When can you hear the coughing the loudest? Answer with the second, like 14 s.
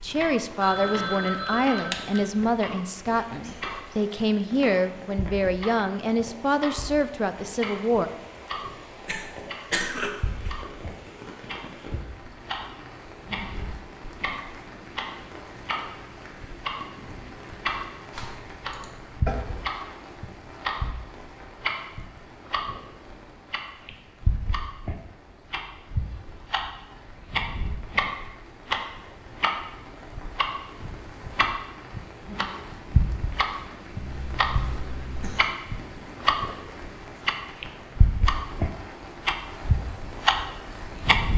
10 s.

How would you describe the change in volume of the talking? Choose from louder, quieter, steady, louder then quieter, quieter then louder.
steady.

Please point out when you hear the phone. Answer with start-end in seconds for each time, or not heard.
0.6-2.4.